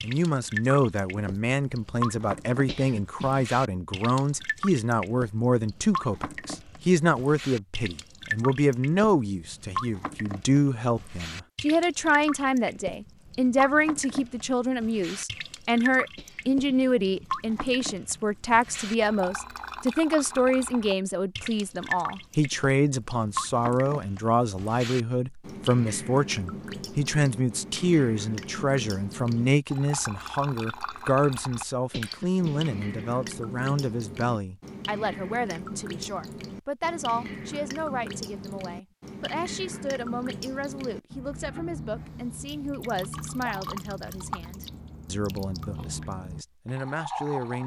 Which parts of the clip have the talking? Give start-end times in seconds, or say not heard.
0.0-47.6.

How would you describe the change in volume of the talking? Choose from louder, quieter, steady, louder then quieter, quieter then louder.
quieter.